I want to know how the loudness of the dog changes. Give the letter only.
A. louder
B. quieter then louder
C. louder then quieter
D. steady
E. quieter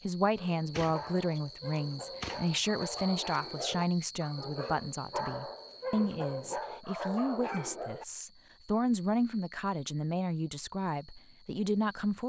A.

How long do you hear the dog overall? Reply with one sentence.
You can hear the dog for 8 seconds altogether.